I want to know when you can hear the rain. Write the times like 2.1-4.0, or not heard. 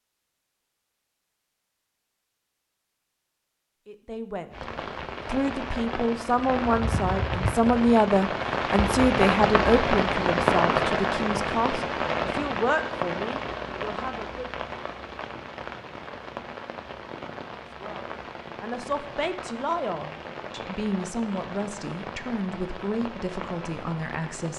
4.5-24.5.